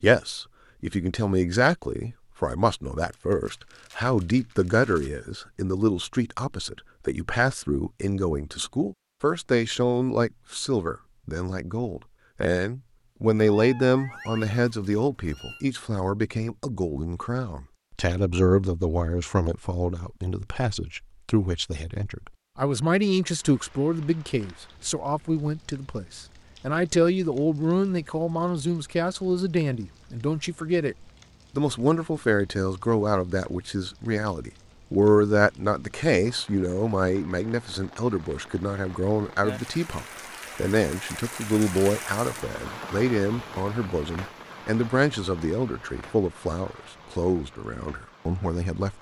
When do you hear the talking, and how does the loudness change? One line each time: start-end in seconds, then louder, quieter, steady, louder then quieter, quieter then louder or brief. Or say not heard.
0.0-48.9 steady.